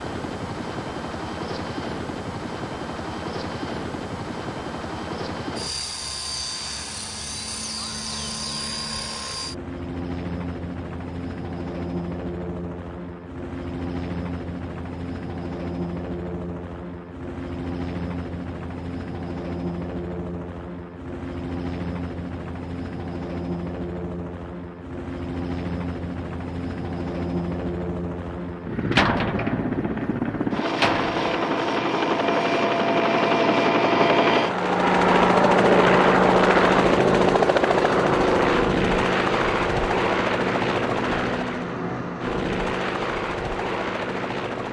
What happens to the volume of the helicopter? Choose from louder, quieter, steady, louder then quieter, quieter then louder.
louder.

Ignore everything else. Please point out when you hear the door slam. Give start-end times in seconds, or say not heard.
28.9-31.2.